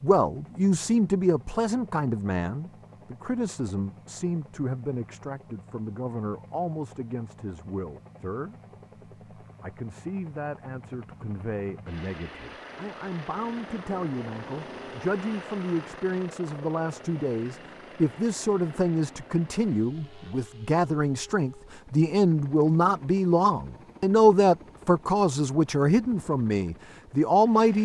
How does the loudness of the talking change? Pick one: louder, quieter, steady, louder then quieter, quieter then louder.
quieter then louder.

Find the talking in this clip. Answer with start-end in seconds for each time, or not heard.
0.0-8.6, 9.4-27.8.